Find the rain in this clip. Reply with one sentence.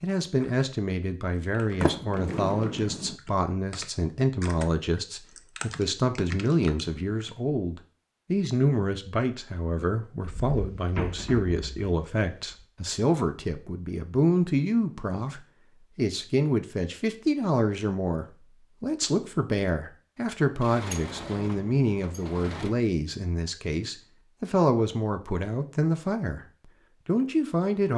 You can't hear the rain here.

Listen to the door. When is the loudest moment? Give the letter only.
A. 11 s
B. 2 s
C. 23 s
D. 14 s
B.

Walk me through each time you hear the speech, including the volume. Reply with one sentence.
You can hear the speech from 0.0 to 27.9 s, at a steady volume.